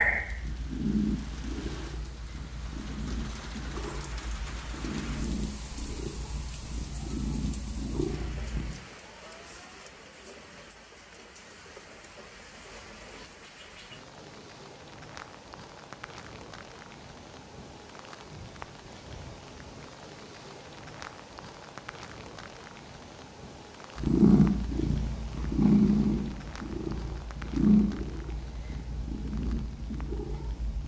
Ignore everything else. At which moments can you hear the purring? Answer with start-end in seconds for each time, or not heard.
0.0-8.8, 23.9-30.8.